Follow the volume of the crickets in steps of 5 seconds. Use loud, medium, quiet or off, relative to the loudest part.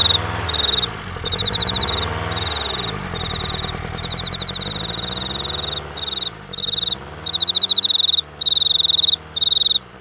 medium, loud.